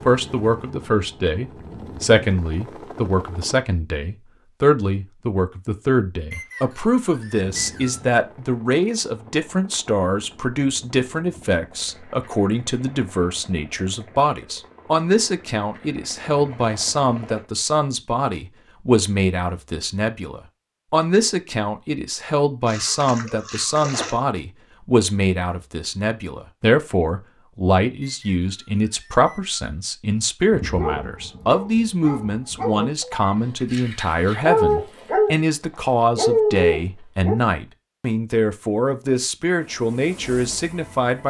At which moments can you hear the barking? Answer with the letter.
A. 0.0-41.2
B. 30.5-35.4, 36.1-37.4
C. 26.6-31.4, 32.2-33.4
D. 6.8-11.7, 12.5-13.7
B.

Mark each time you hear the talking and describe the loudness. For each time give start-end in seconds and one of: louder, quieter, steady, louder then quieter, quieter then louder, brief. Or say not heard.
0.0-41.2 steady.